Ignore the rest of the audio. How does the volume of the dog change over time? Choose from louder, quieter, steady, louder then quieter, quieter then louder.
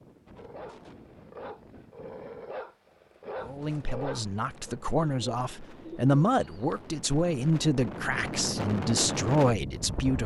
louder.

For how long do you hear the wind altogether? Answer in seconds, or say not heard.
10 s.